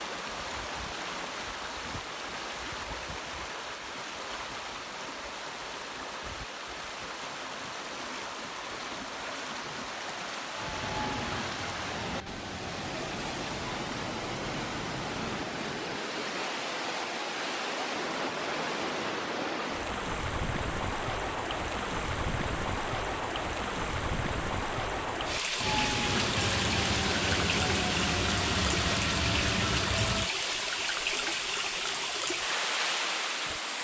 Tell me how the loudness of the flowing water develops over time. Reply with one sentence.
The loudness of the flowing water goes up.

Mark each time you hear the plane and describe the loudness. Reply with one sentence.
You can hear the plane briefly from 10.5 to 13.0 s; and from 25.6 to 30.3 s, at a steady volume.